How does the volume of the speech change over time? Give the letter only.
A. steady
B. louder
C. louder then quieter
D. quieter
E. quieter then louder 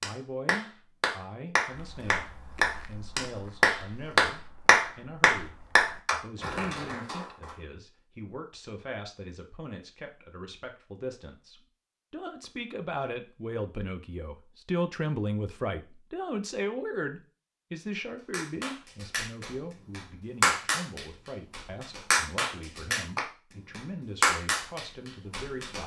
C.